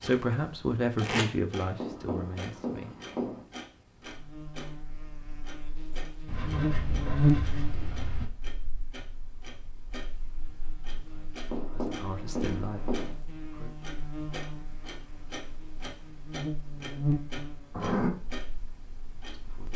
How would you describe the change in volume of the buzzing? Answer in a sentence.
The loudness of the buzzing goes down, then up.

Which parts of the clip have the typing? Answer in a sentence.
The typing can't be heard in this clip.